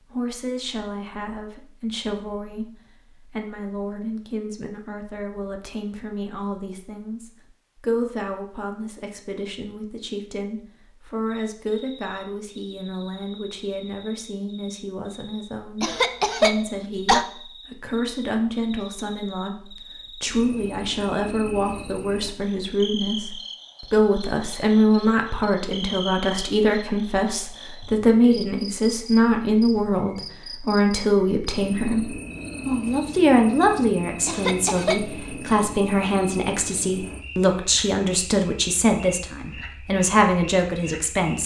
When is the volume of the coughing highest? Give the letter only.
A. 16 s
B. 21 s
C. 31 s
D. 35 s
A.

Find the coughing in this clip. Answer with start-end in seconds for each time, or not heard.
15.8-17.2, 34.2-35.1.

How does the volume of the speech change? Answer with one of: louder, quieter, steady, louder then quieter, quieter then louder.
louder.